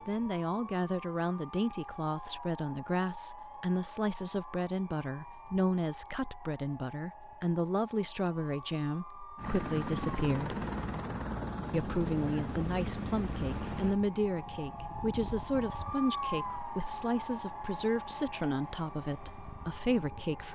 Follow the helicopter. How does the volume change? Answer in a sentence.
The loudness of the helicopter goes down.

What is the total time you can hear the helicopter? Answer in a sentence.
You can hear the helicopter for 11 seconds altogether.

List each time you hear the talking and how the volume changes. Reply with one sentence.
You can hear the talking from 0.1 to 10.6 s, at a steady volume; and from 11.7 to 20.5 s, at a steady volume.